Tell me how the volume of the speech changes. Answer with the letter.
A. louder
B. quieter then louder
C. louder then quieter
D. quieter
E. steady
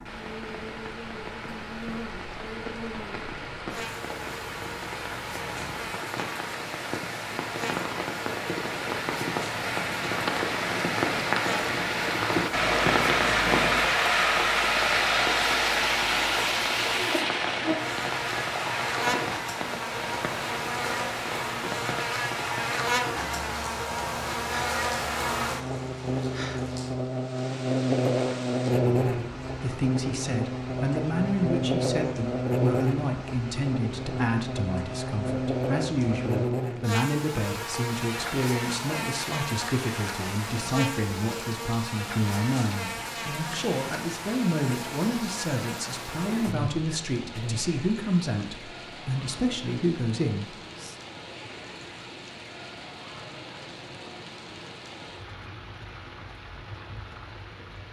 E.